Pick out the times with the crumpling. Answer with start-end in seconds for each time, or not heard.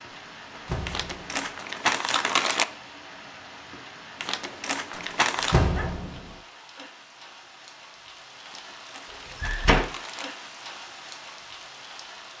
0.8-2.6, 4.2-5.5, 8.4-10.2.